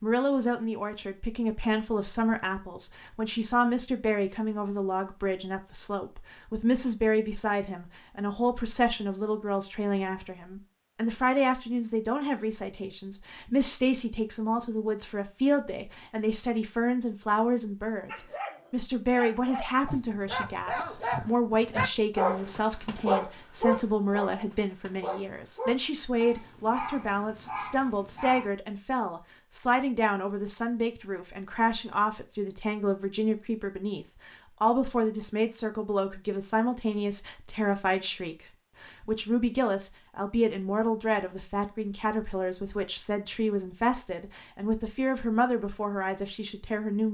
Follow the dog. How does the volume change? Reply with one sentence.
The loudness of the dog goes up, then down.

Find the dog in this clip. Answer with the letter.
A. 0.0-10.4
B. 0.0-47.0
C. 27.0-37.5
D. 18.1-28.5
D.